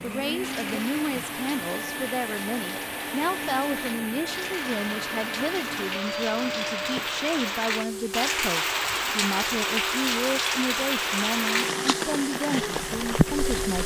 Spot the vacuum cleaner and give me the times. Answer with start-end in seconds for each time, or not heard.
0.0-13.8.